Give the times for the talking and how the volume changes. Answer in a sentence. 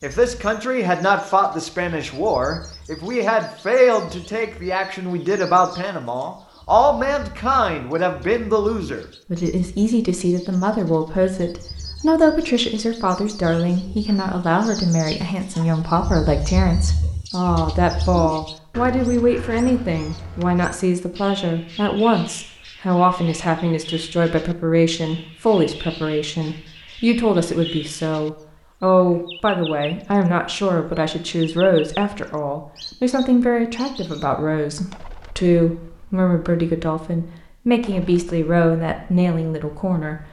The talking can be heard from 0.0 to 40.2 s, at a steady volume.